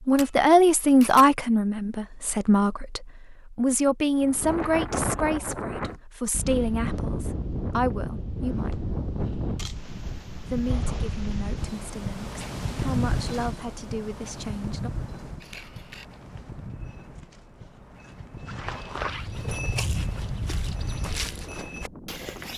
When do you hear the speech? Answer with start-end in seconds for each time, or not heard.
0.1-8.8, 10.5-14.9.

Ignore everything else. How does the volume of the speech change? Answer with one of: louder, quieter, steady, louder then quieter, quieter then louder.
quieter.